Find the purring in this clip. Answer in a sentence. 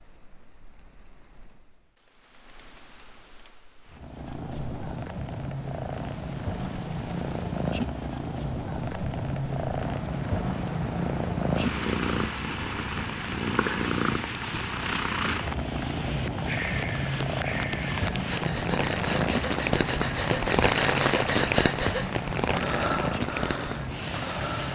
The purring can be heard from 3.9 to 24.7 s.